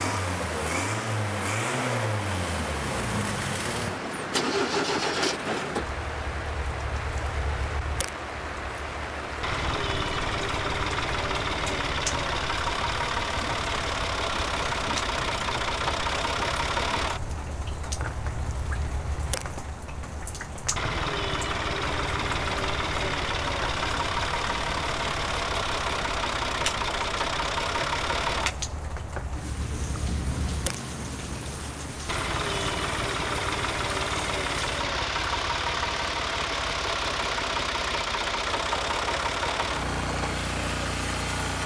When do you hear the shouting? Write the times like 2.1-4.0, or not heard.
not heard.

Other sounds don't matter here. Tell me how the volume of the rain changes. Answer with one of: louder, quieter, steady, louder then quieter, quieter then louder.
steady.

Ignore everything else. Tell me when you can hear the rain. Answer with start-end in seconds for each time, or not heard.
0.0-41.6.